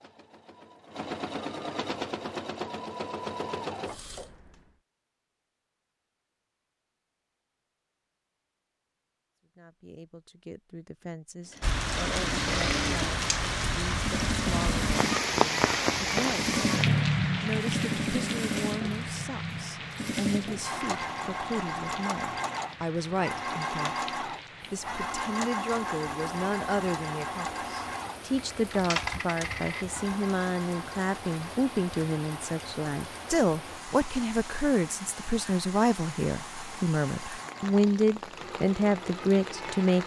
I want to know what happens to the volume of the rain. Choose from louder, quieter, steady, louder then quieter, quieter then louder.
quieter.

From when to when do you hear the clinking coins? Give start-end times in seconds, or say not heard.
28.4-29.9.